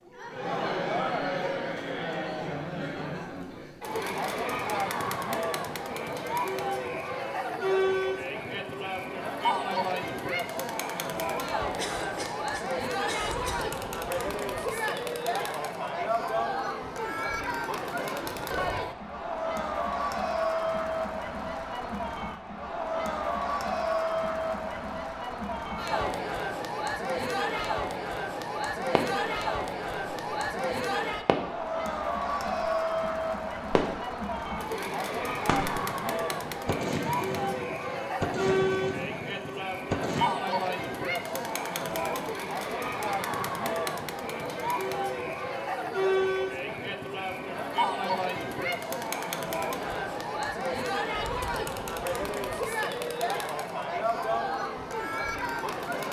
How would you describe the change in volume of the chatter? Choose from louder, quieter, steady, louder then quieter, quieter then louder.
steady.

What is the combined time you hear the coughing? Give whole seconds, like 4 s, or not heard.
2 s.